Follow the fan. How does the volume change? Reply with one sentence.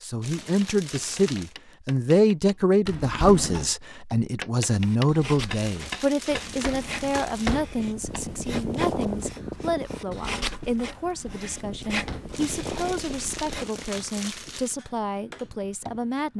The volume of the fan goes down.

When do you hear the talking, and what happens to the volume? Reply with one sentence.
You can hear the talking from 0.0 to 16.3 s, getting quieter.